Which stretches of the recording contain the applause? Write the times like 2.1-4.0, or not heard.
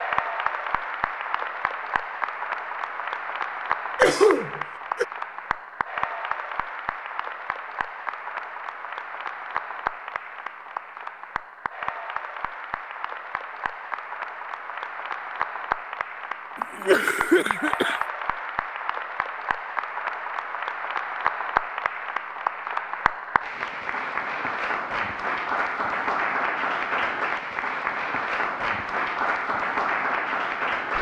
0.0-30.9.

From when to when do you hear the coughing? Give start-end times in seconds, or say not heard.
4.0-5.0, 16.8-18.0.